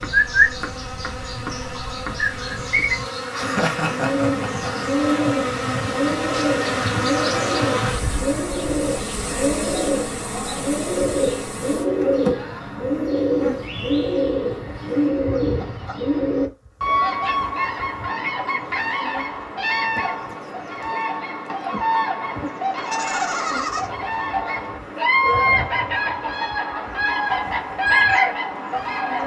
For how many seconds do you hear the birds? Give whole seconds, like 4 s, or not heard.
29 s.